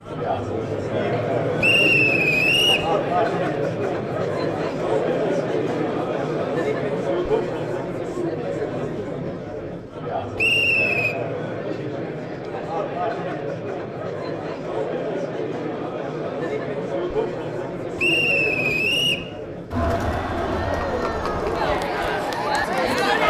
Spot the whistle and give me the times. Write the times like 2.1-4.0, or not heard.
1.6-2.9, 10.3-11.2, 17.9-19.2.